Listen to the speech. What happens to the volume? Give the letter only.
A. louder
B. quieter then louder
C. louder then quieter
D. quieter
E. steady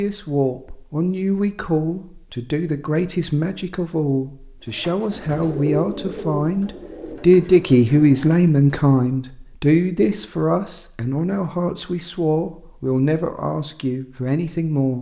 C.